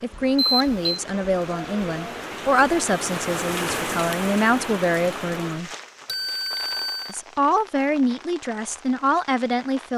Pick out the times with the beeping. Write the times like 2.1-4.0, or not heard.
0.3-0.8, 6.0-7.2.